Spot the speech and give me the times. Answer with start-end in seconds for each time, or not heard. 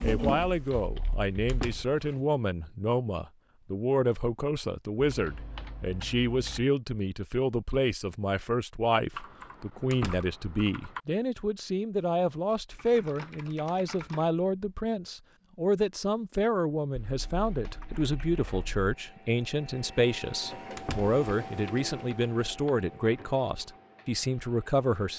0.0-25.1.